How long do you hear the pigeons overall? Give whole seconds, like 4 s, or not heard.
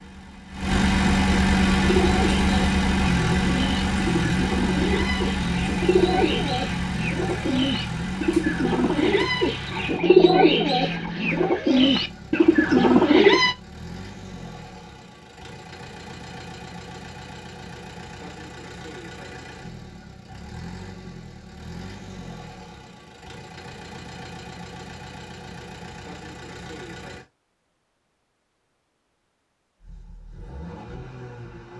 12 s.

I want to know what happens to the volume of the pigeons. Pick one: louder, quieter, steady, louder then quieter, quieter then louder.
louder.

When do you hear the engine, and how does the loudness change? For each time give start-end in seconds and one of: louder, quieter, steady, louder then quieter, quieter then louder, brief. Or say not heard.
0.0-27.2 quieter
29.8-31.7 brief.